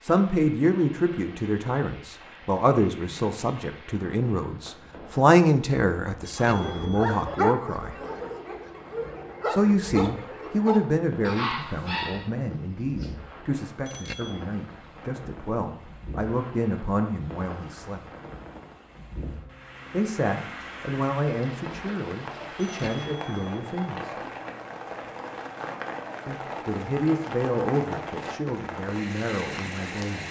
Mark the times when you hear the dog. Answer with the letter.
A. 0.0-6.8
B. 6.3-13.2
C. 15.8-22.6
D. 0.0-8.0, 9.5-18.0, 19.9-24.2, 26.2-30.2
B.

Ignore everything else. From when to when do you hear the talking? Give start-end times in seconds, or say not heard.
0.0-8.0, 9.5-18.0, 19.9-24.2, 26.2-30.2.